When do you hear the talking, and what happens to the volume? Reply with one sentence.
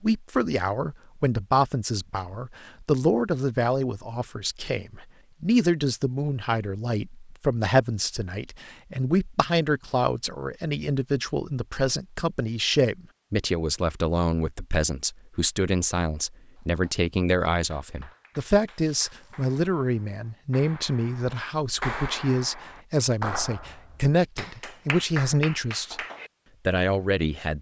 The talking can be heard from 0.0 to 25.9 s, at a steady volume; and briefly from 26.6 to 27.5 s.